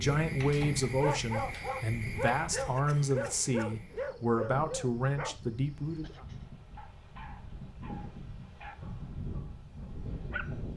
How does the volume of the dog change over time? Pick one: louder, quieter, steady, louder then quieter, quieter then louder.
quieter.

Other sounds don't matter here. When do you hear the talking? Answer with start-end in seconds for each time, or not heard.
0.0-6.2.